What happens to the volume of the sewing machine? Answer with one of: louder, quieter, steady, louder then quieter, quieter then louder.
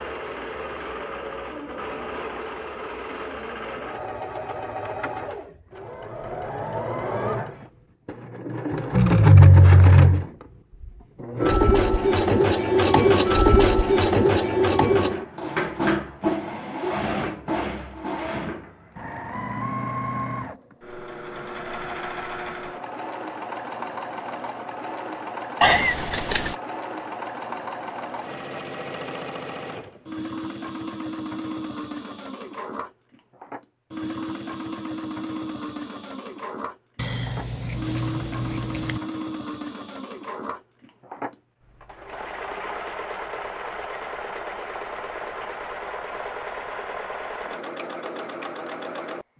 louder then quieter.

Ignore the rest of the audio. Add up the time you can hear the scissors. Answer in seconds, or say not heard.
4 s.